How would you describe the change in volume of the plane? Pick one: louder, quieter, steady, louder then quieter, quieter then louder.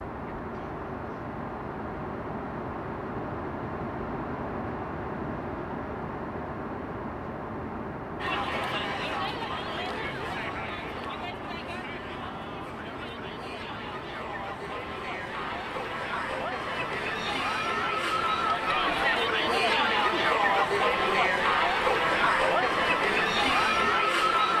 quieter.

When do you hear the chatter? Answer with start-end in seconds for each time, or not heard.
8.2-24.5.